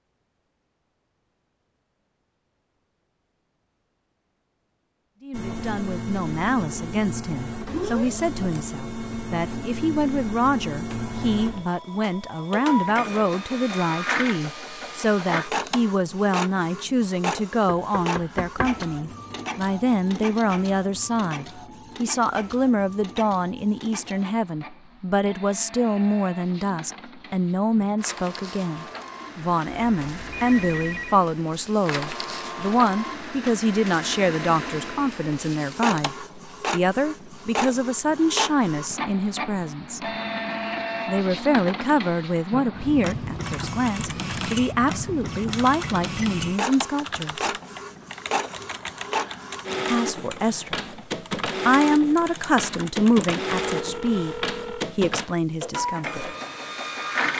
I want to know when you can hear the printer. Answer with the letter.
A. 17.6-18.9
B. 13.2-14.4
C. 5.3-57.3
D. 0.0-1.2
C.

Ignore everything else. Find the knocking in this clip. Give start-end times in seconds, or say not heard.
17.6-18.9.